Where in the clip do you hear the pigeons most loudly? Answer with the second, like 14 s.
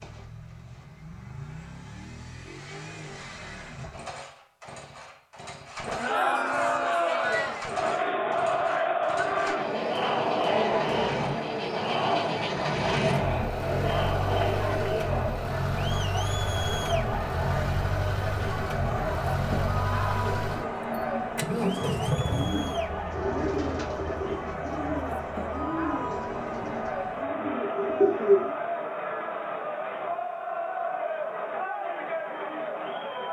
28 s.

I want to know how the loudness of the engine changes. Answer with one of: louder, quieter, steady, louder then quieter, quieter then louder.
louder.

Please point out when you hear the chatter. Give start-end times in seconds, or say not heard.
5.8-33.2.